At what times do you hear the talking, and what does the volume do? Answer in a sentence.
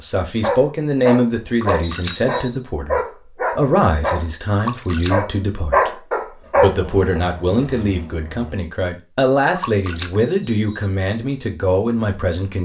You can hear the talking from 0.0 to 12.5 s, at a steady volume.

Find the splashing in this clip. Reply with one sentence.
The splashing can be heard from 1.6 to 2.2 s, from 4.5 to 5.2 s and from 9.6 to 10.2 s.